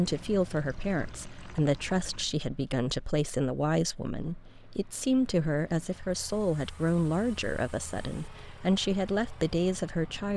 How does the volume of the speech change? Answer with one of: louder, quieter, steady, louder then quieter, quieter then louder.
steady.